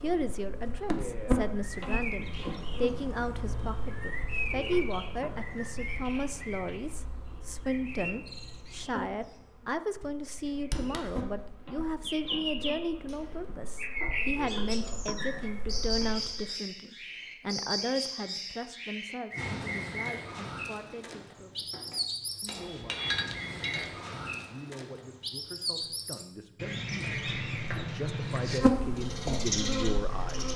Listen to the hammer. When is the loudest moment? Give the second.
23 s.